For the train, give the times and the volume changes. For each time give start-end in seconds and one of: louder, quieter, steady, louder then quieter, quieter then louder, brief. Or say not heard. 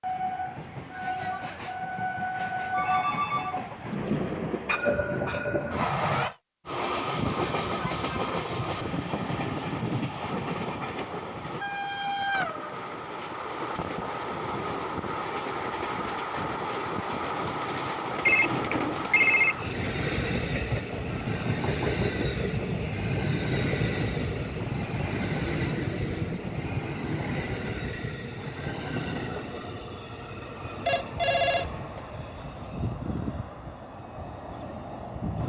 0.0-35.4 quieter.